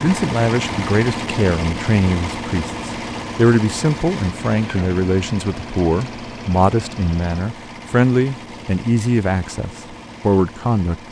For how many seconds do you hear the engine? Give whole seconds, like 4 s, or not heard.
11 s.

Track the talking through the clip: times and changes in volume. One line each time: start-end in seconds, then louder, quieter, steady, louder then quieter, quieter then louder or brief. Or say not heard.
0.0-11.0 steady.